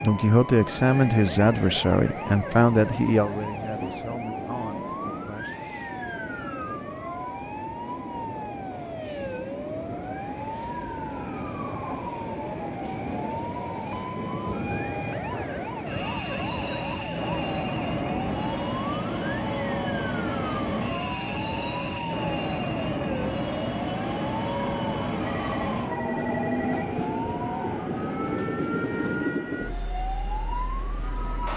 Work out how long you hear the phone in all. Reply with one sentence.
You can hear the phone for 2 seconds altogether.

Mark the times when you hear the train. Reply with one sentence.
You can hear the train from 0.0 to 31.5 s.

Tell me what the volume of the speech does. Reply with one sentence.
The loudness of the speech goes down.